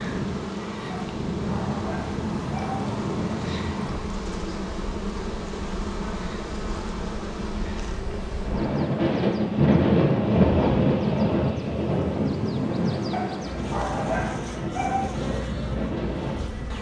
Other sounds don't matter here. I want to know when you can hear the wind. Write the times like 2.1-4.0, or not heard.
0.0-16.7.